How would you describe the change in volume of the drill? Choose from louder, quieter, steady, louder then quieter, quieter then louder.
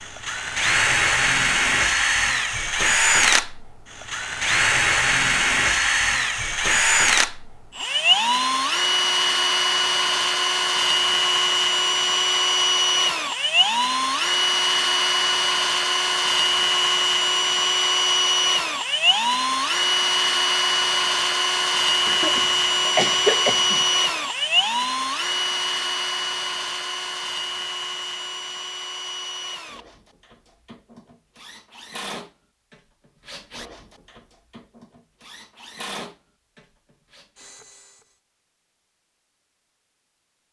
quieter.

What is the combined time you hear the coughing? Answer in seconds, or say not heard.
2 s.